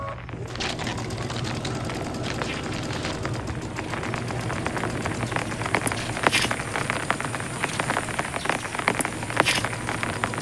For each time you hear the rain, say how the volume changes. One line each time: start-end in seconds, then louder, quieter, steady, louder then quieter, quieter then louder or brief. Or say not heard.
0.0-10.3 louder.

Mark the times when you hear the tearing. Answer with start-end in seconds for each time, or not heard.
0.5-3.2, 5.8-6.3.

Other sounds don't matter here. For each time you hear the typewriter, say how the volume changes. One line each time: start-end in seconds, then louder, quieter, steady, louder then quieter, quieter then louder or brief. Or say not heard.
not heard.